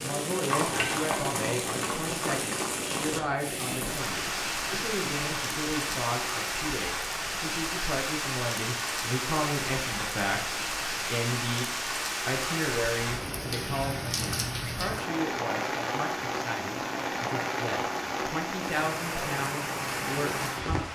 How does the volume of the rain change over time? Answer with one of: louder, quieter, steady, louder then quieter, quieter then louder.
steady.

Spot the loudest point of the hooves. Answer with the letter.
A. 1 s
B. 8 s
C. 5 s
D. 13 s
A.